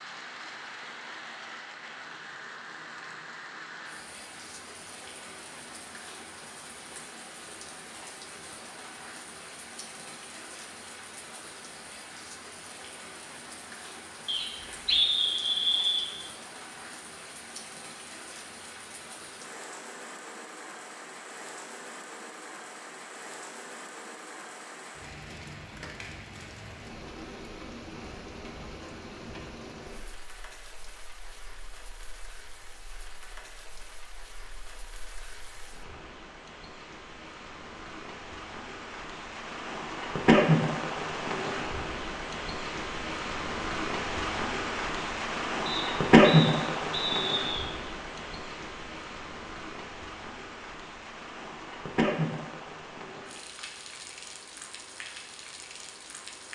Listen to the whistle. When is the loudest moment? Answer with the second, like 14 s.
15 s.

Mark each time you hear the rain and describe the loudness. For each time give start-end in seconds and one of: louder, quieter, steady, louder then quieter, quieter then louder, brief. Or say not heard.
0.0-56.5 louder.